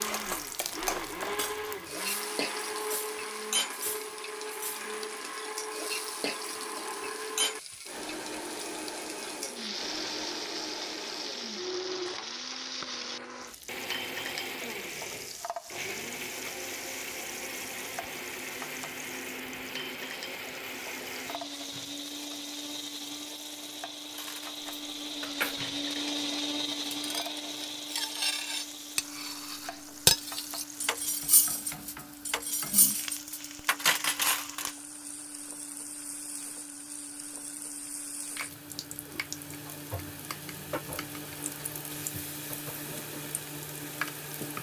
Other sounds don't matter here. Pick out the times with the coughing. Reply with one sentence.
You can't hear the coughing here.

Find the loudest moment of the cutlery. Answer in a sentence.
The loudest moment of the cutlery is at 30 seconds.